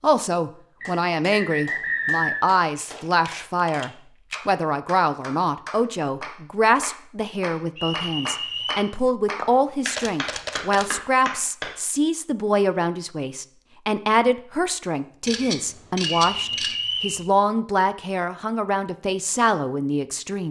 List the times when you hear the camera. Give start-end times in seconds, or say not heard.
2.6-4.4, 9.3-10.9, 15.2-16.8.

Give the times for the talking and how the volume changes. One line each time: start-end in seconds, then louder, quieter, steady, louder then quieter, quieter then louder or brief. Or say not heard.
0.0-20.4 steady.